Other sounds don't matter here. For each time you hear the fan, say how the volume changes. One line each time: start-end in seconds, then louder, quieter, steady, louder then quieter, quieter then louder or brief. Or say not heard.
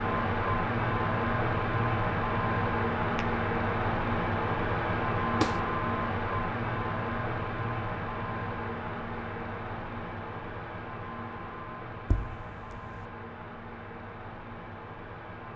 0.0-15.5 quieter.